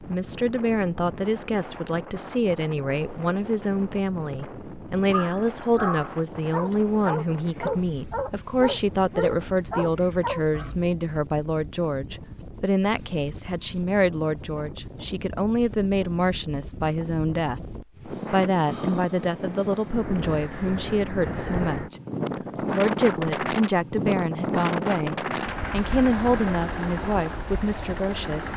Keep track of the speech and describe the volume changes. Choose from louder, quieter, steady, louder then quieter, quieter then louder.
steady.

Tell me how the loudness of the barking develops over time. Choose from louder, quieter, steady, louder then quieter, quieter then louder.
steady.